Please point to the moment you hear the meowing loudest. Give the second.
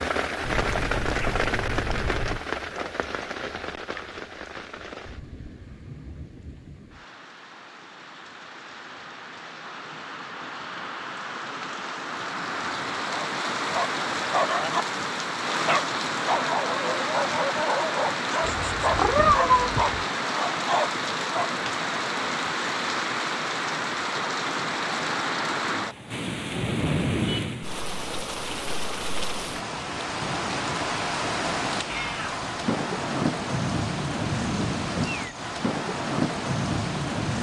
19 s.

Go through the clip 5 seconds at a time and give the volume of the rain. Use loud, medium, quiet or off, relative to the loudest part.
loud, quiet, loud, loud, loud, loud, loud, loud.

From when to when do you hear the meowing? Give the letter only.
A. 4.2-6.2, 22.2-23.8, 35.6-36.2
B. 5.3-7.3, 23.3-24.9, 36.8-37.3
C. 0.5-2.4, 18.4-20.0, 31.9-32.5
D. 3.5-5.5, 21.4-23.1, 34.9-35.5
C.